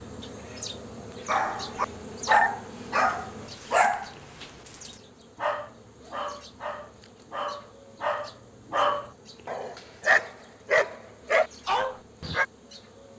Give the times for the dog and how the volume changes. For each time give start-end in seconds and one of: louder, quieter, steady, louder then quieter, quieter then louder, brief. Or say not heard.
1.2-12.4 quieter then louder.